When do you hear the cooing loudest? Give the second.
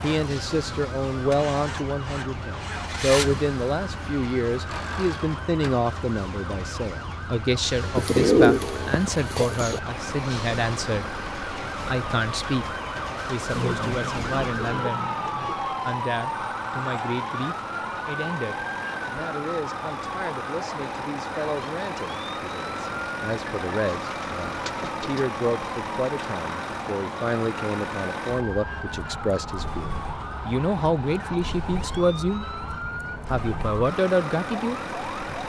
8 s.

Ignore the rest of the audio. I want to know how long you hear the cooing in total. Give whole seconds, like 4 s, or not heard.
5 s.